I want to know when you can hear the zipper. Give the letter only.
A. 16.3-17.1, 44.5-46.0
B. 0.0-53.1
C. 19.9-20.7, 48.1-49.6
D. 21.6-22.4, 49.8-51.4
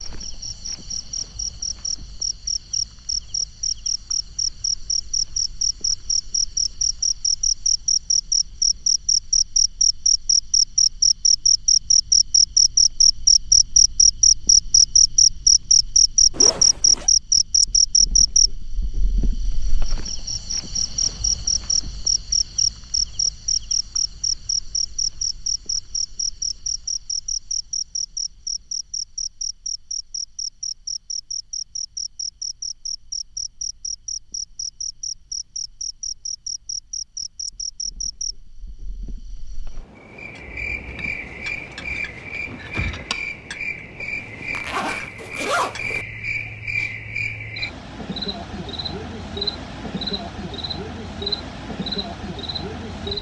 A.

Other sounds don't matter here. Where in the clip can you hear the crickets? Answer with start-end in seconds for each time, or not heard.
0.0-53.1.